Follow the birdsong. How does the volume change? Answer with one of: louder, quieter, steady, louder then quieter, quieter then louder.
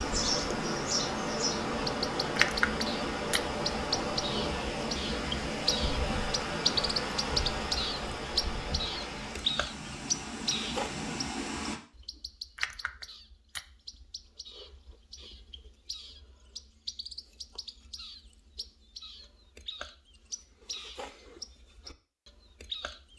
quieter.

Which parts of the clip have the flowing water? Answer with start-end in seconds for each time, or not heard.
0.0-11.8.